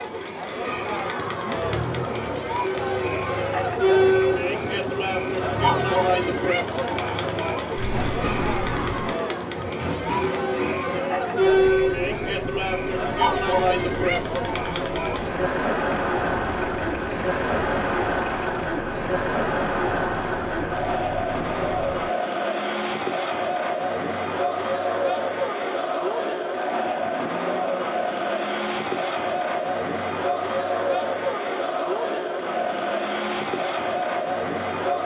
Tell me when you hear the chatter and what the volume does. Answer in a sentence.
The chatter can be heard from 0.0 to 35.0 s, at a steady volume.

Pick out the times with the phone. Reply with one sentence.
The phone can be heard from 7.8 to 9.1 s.